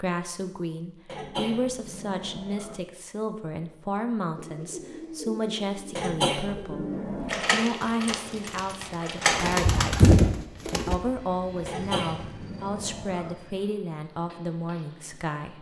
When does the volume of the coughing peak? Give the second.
6 s.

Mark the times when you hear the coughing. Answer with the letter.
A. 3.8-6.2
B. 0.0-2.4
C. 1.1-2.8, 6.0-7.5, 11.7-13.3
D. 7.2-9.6
C.